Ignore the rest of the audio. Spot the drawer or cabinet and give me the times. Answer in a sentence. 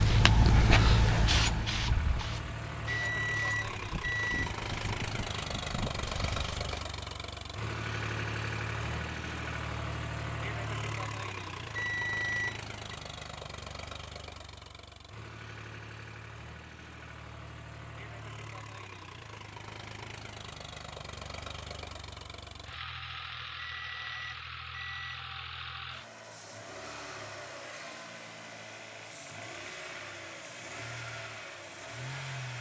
The drawer or cabinet can't be heard in this clip.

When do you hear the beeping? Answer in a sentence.
The beeping can be heard from 2.9 to 4.5 s, from 11.8 to 12.9 s and from 23.6 to 25.3 s.